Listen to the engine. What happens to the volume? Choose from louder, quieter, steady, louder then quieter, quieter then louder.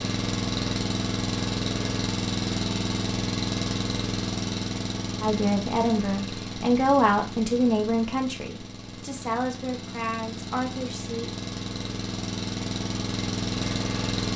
quieter then louder.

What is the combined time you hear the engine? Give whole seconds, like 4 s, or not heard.
14 s.